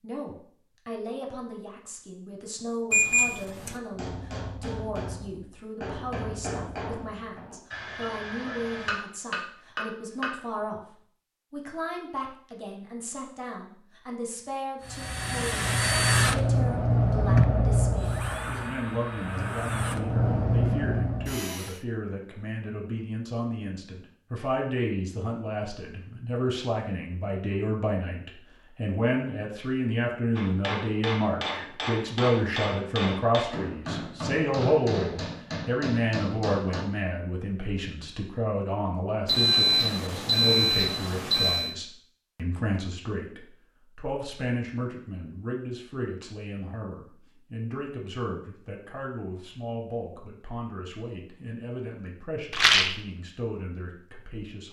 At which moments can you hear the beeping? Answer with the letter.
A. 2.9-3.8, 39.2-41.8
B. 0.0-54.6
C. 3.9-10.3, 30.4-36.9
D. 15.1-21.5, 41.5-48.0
A.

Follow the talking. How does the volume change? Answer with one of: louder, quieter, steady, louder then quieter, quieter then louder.
louder then quieter.